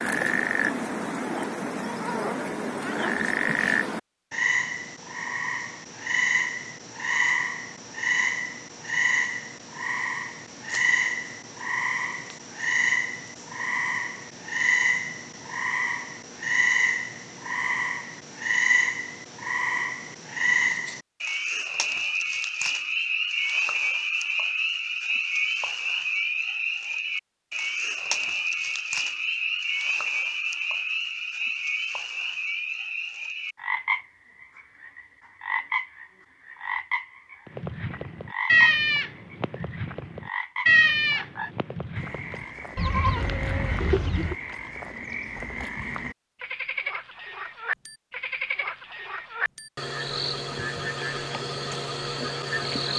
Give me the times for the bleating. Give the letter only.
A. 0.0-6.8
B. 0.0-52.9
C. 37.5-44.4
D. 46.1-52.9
C.